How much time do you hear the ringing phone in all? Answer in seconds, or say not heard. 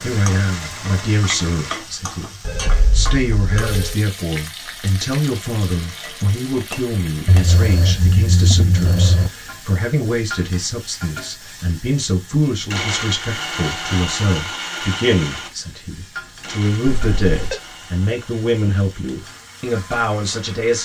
4 s.